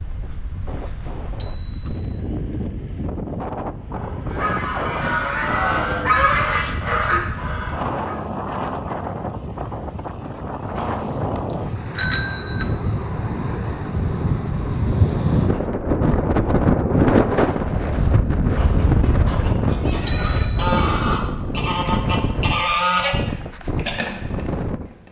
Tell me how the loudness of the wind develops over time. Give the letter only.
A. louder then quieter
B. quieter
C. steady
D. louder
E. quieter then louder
A.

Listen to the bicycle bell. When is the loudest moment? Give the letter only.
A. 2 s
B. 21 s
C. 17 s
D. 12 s
D.